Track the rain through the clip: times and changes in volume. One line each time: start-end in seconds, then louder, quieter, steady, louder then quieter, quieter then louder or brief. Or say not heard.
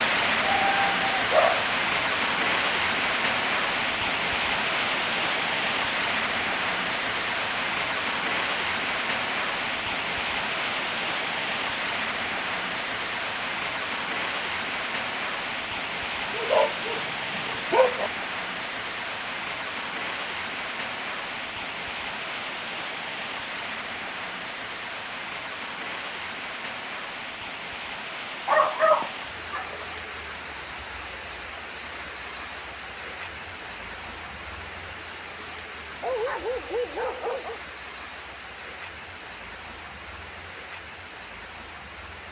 0.0-42.2 quieter.